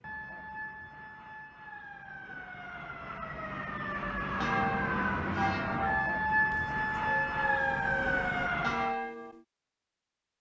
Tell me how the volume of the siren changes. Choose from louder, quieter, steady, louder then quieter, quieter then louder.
louder.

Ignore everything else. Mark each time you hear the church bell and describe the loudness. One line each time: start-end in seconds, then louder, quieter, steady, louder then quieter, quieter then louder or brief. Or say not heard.
4.4-9.4 quieter then louder.